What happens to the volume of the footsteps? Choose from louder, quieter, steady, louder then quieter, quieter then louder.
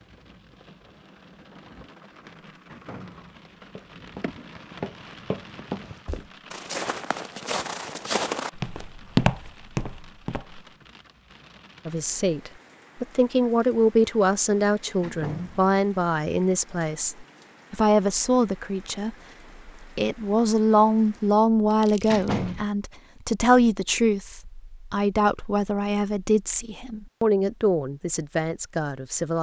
louder.